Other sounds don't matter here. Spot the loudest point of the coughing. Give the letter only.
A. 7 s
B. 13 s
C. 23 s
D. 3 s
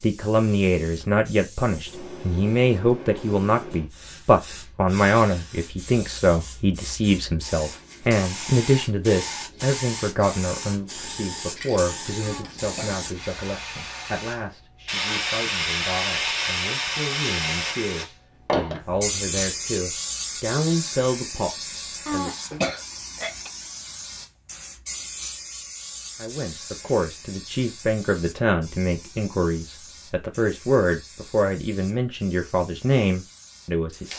C.